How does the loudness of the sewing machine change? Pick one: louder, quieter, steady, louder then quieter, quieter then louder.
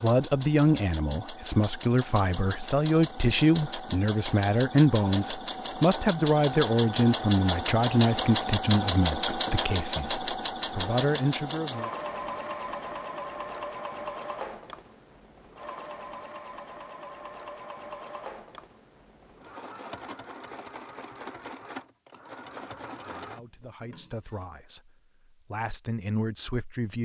louder then quieter.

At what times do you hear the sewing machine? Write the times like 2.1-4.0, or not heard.
0.0-24.4.